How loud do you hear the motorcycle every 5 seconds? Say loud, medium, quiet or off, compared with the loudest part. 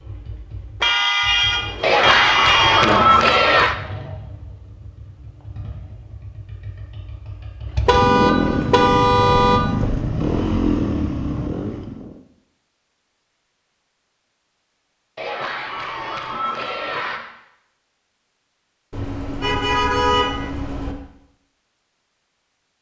quiet, loud, loud, off, off.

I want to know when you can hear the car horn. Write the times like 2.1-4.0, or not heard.
0.8-3.0, 7.8-9.6, 18.9-20.9.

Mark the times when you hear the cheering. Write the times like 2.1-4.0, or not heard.
1.8-3.8, 15.2-17.2.